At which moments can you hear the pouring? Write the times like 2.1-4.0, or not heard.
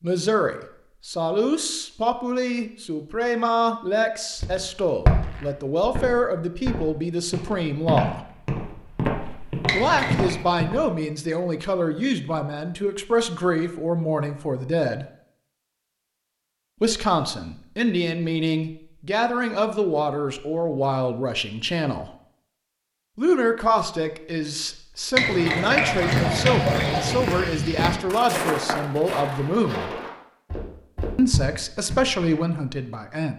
9.7-10.3, 25.1-27.1.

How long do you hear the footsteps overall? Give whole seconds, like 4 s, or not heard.
13 s.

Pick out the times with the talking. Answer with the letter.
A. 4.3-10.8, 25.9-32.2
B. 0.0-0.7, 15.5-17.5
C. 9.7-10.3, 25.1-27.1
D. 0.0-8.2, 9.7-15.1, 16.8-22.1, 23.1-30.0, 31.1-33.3
D.